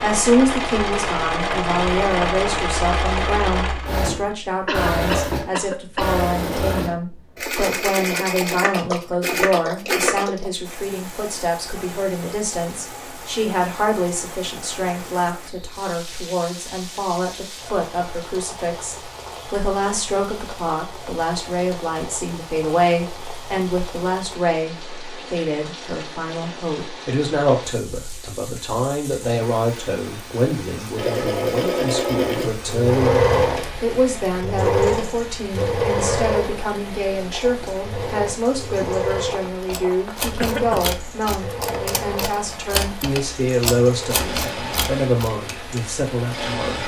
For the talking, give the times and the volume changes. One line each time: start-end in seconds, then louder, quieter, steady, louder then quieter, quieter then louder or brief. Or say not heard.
0.0-46.8 steady.